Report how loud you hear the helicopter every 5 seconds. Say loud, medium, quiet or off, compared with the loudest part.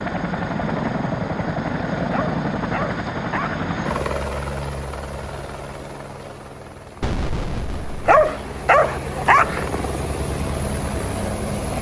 loud, medium, loud.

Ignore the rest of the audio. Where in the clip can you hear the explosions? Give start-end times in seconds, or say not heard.
7.0-8.2.